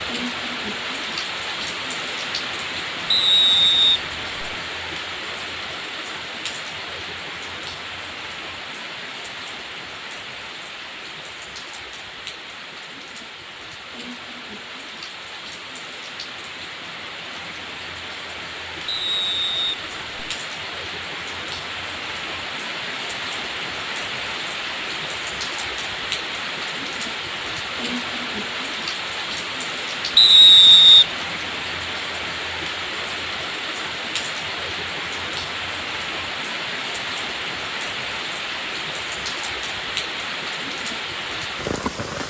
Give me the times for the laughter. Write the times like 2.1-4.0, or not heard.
not heard.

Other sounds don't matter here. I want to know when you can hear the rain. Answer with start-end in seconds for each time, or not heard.
0.0-42.2.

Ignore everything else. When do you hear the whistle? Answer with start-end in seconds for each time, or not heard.
3.1-4.5, 18.9-20.2, 30.1-31.1.